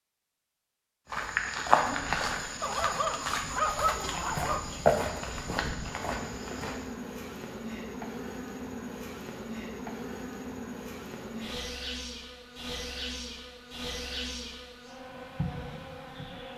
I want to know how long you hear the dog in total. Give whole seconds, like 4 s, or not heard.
2 s.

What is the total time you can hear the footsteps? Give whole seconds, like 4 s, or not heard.
6 s.